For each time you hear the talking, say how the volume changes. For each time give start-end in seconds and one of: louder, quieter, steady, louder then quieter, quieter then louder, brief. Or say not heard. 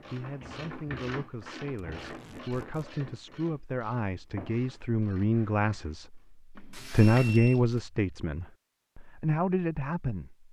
0.0-10.4 louder then quieter.